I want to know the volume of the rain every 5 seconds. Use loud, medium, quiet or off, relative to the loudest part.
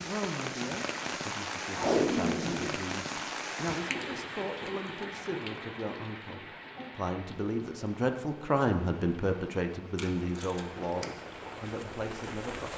loud, medium, medium.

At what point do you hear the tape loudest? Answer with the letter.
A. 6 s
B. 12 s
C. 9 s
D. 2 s
D.